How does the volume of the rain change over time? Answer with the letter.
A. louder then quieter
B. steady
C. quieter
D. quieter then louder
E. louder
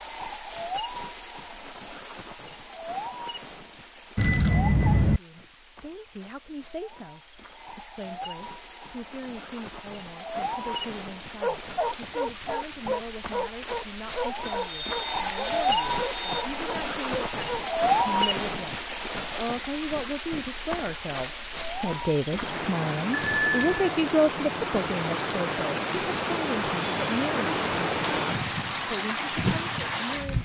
E.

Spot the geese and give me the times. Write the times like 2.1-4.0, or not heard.
not heard.